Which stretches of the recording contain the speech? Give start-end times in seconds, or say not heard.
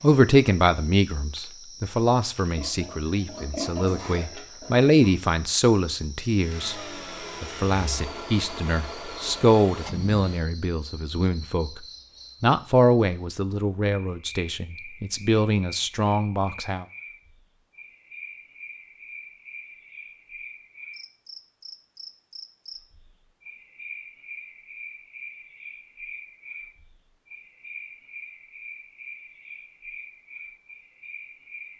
0.0-6.8, 7.4-16.9.